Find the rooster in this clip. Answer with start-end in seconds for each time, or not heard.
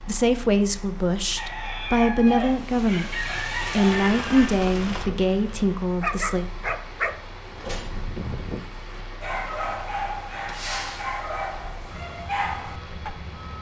1.4-4.5.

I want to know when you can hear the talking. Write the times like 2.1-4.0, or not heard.
0.1-6.5.